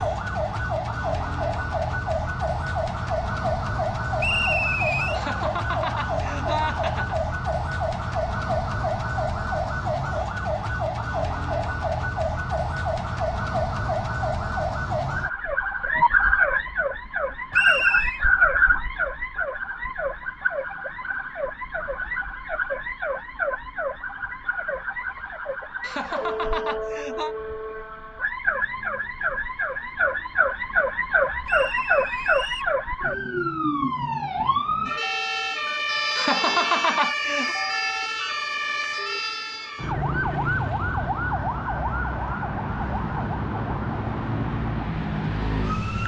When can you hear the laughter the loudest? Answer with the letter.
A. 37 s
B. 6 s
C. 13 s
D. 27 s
A.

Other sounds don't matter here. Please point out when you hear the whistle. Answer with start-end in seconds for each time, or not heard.
4.2-5.2, 17.5-18.2, 31.4-32.8.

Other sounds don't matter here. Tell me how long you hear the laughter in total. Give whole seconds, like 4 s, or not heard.
5 s.